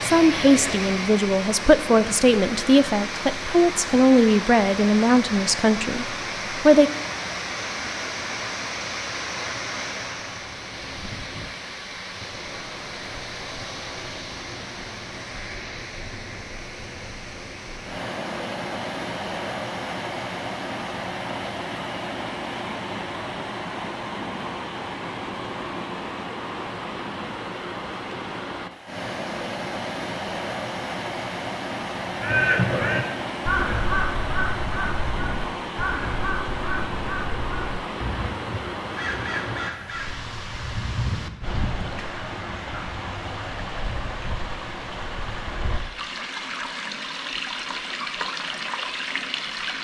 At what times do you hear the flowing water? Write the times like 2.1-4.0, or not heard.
0.0-49.7.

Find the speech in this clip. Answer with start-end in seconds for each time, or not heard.
0.0-6.9.